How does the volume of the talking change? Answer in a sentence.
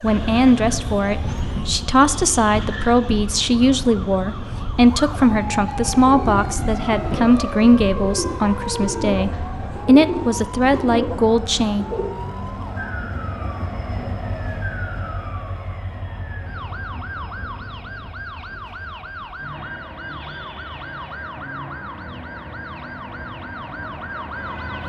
The loudness of the talking stays about the same.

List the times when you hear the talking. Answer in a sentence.
The talking can be heard from 0.0 to 11.8 s.